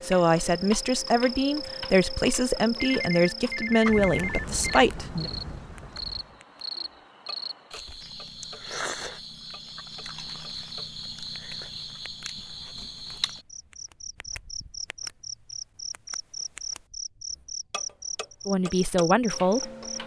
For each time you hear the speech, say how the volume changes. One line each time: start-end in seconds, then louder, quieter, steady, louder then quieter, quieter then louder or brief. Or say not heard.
0.0-5.3 steady
18.4-19.7 brief.